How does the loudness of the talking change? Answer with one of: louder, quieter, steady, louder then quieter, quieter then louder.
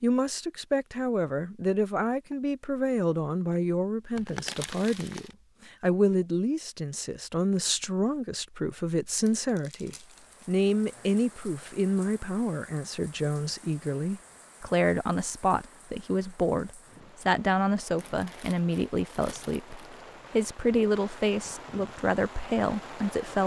steady.